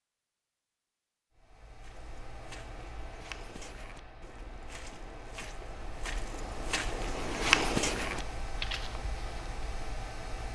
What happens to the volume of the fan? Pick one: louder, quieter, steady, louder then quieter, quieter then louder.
louder.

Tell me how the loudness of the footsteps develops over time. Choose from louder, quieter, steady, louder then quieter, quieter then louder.
louder.